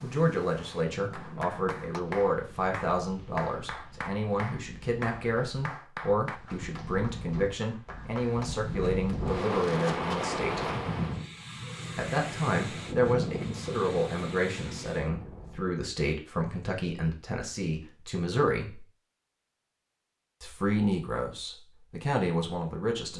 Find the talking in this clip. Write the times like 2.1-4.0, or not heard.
0.0-10.7, 11.9-18.9, 20.4-23.1.